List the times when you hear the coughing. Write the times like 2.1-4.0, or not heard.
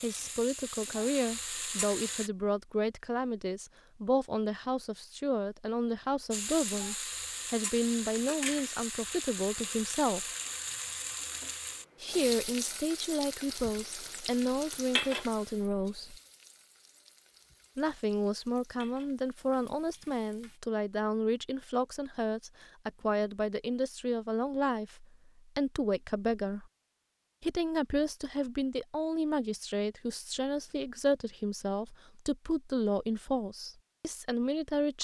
not heard.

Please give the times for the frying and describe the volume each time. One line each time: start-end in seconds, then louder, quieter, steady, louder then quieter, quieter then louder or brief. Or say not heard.
0.0-2.3 brief
6.3-20.6 quieter.